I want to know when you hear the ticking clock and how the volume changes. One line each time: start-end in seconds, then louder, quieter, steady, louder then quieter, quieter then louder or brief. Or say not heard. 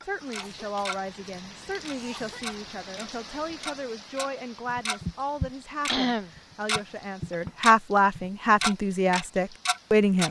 0.3-1.0 brief
1.9-10.2 louder.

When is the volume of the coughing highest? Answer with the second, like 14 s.
6 s.